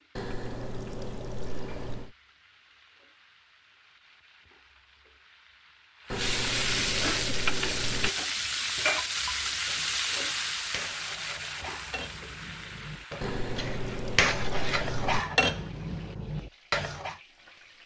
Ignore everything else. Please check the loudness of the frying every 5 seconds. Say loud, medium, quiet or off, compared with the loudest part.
quiet, loud, medium, quiet.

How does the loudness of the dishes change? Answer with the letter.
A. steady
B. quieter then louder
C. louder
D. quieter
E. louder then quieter
C.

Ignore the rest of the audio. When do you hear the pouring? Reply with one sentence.
The pouring can be heard from 0.1 to 2.1 s, from 6.1 to 8.1 s and from 13.2 to 15.2 s.